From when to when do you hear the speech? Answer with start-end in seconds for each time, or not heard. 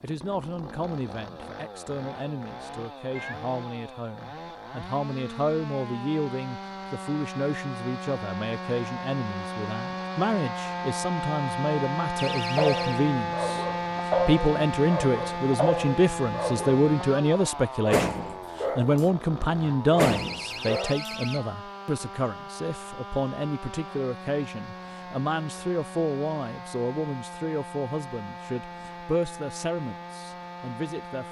0.0-31.2.